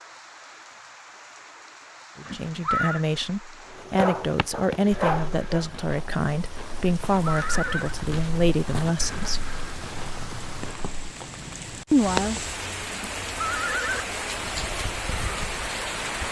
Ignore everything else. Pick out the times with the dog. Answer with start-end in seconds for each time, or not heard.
3.6-5.7.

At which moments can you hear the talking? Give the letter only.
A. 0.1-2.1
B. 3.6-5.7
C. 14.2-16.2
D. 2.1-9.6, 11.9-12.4
D.